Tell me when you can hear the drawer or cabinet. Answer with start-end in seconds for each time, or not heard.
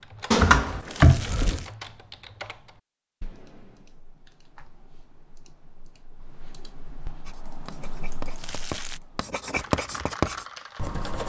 0.3-1.6.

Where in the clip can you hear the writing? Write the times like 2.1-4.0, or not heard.
7.2-11.2.